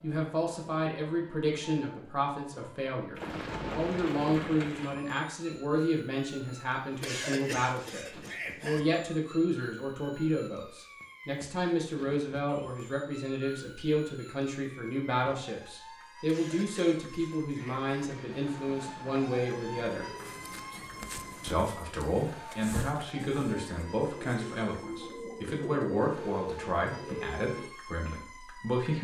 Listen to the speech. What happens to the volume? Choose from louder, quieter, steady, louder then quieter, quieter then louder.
steady.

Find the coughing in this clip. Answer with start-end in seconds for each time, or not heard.
7.0-8.8, 16.2-18.2.